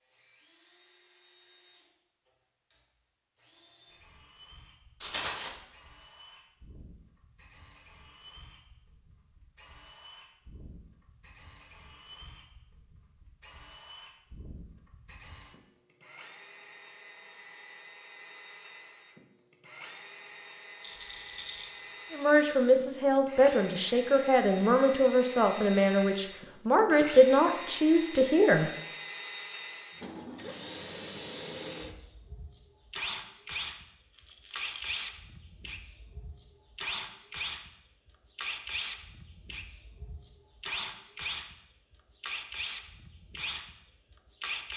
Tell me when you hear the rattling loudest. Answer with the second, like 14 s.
5 s.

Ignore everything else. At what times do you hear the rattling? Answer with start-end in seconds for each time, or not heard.
5.0-5.5, 20.8-22.4, 34.1-35.0.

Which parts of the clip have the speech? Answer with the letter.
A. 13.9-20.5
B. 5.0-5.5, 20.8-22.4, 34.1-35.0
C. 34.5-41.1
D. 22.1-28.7
D.